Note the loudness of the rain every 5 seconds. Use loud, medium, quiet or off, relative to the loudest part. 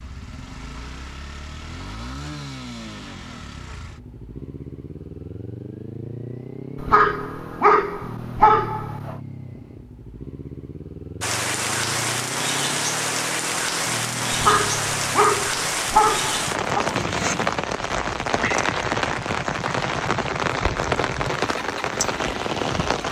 off, off, loud, loud, loud.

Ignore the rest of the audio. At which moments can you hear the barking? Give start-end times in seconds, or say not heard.
6.8-9.2, 14.3-16.9.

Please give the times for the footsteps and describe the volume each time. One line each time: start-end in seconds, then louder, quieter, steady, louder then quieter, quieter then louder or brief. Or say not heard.
not heard.